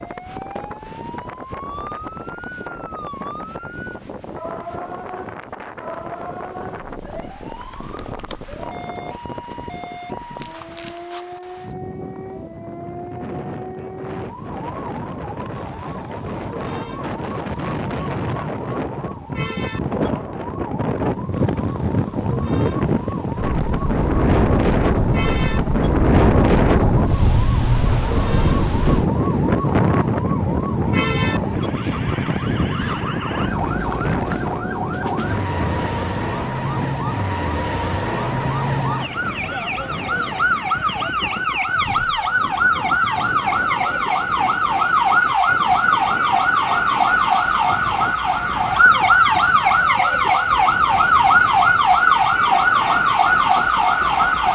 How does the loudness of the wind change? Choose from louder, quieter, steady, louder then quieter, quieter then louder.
louder then quieter.